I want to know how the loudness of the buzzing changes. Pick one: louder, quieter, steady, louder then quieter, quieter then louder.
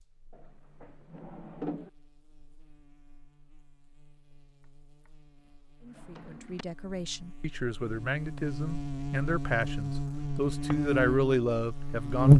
louder.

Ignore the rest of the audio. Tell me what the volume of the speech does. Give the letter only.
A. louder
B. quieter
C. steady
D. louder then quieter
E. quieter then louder
A.